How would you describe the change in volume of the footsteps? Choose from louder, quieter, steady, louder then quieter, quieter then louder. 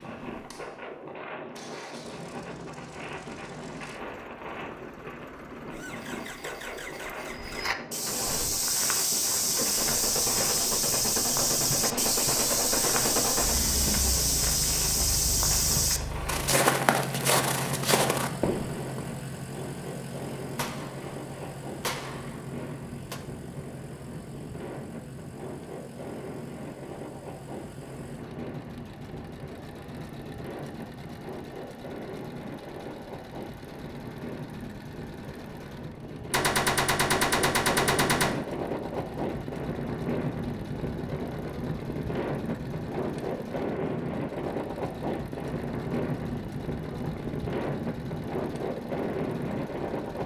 steady.